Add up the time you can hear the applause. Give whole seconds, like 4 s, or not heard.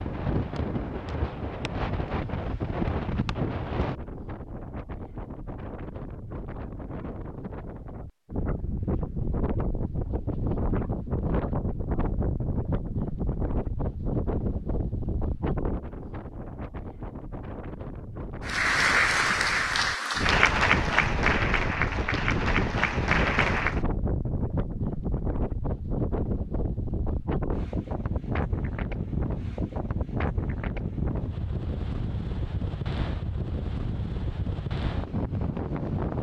5 s.